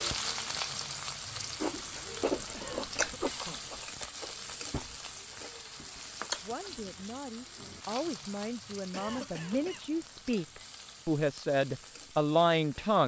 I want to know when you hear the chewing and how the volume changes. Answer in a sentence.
You can hear the chewing from 1.6 to 6.8 s, getting quieter then louder.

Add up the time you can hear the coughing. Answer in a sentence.
You can hear the coughing for 2 seconds altogether.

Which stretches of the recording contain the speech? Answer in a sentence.
You can hear the speech from 6.4 to 13.0 s.